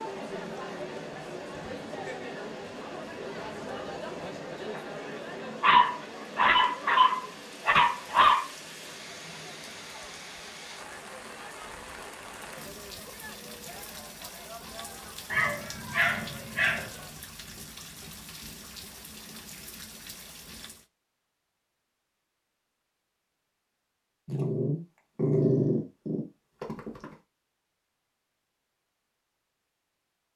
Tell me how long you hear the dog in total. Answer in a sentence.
You can hear the dog for 7 seconds altogether.